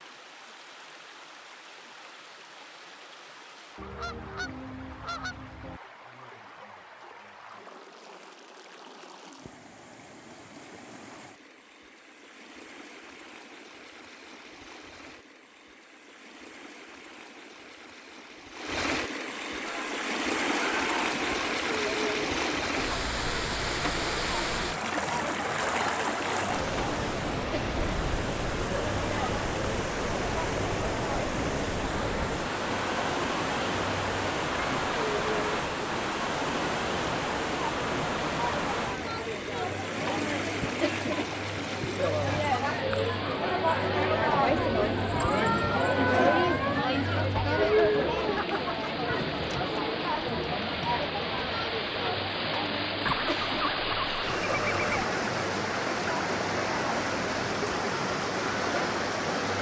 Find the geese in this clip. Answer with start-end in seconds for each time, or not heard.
3.8-5.8, 53.0-54.9.